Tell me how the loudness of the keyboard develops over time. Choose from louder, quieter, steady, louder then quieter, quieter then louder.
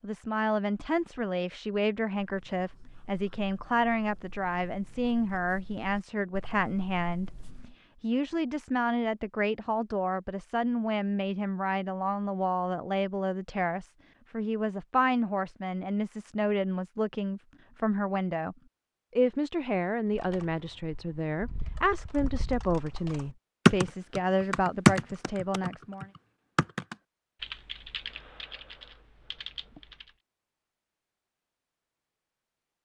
louder then quieter.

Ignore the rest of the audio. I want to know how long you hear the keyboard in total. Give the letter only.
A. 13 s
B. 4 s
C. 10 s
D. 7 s
C.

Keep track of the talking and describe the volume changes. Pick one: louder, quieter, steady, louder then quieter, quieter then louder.
steady.